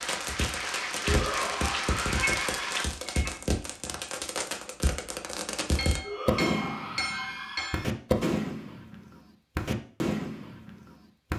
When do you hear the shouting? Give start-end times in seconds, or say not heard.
1.1-2.8, 6.0-8.0.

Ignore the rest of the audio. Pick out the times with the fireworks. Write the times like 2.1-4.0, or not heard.
0.0-11.3.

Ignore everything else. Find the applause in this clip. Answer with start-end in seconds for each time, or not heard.
0.0-2.9.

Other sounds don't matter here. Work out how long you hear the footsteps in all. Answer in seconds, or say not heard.
not heard.